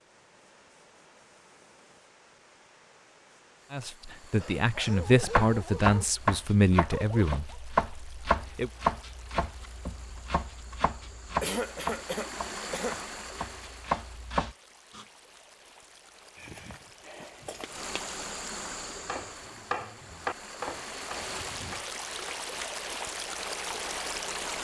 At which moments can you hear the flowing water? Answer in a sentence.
You can hear the flowing water from 0.0 to 24.5 s.